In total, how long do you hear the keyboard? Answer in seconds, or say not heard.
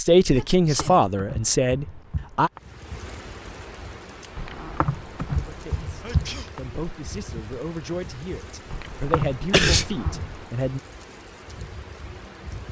6 s.